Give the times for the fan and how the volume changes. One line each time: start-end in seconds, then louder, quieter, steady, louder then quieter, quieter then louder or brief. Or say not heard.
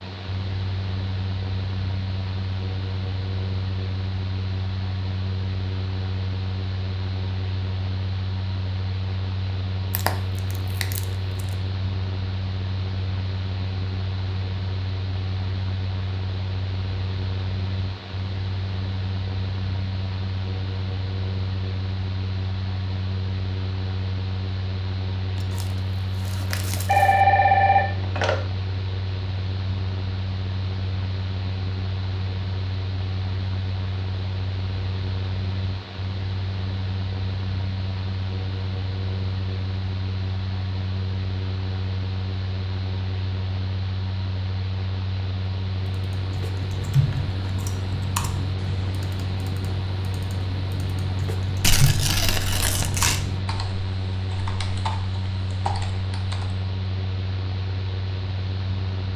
0.0-59.1 steady.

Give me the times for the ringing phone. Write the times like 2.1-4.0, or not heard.
26.9-28.4.